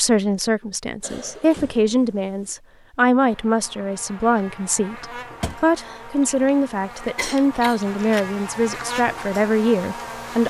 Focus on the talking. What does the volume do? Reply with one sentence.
The loudness of the talking stays about the same.